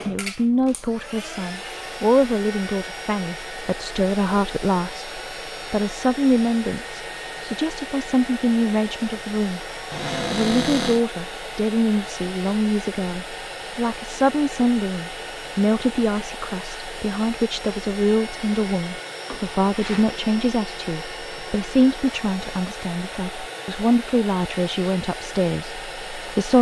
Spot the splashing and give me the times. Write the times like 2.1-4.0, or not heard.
not heard.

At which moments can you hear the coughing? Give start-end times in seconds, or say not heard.
not heard.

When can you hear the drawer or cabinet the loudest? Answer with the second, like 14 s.
11 s.